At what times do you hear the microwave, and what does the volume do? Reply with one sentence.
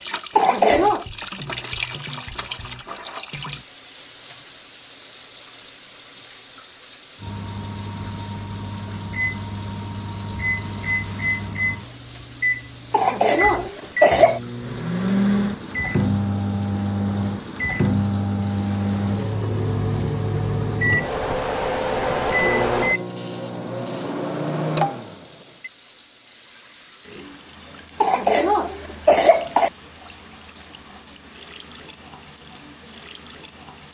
The microwave can be heard from 7.2 to 25.7 s, getting louder.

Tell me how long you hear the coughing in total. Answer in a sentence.
You can hear the coughing for 4 seconds altogether.